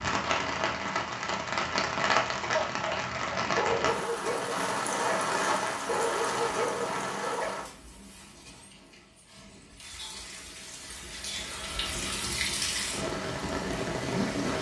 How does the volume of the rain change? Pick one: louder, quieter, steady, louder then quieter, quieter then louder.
quieter then louder.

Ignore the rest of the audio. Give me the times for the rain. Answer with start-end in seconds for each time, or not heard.
0.0-14.5.